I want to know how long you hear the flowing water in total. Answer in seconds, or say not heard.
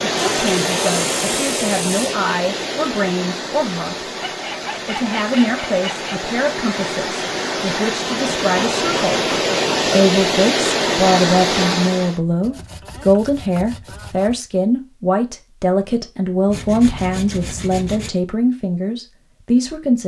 12 s.